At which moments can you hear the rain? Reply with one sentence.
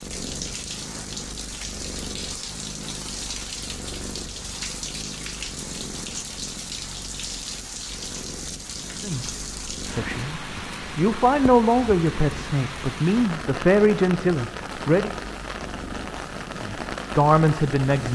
The rain can be heard from 0.0 to 18.1 s.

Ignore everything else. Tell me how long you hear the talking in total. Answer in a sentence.
You can hear the talking for 8 seconds altogether.